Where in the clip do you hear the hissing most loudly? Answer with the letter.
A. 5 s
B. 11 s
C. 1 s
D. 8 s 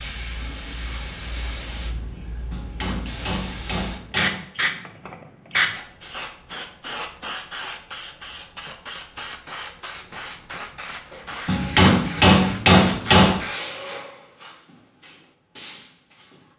A.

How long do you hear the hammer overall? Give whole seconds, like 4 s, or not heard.
4 s.